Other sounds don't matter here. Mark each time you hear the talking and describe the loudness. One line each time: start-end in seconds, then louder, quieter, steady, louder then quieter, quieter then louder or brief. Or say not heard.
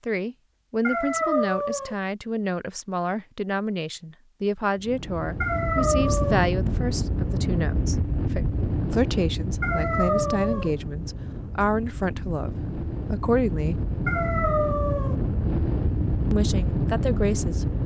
0.1-13.8 steady
16.3-17.6 brief.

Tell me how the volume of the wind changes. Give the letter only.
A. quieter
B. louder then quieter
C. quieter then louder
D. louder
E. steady
C.